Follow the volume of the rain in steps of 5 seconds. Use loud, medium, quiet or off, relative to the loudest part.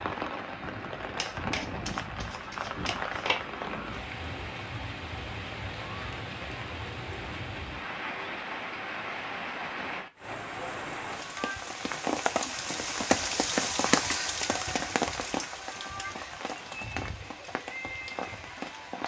medium, medium, loud, medium.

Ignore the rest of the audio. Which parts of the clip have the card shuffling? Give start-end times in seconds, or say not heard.
0.8-3.5.